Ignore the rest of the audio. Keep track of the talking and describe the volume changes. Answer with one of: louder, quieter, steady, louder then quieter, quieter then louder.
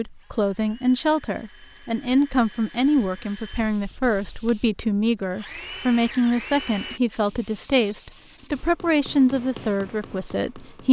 steady.